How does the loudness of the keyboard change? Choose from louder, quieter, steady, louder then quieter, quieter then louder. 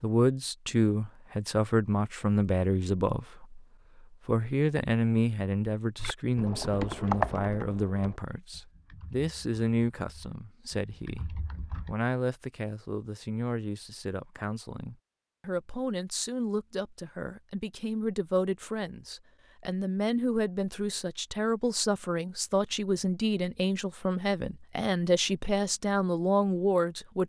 quieter then louder.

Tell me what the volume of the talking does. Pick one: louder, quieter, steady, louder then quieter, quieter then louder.
quieter then louder.